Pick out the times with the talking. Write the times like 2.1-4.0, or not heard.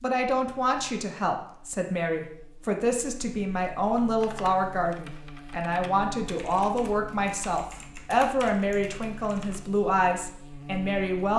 0.0-11.3.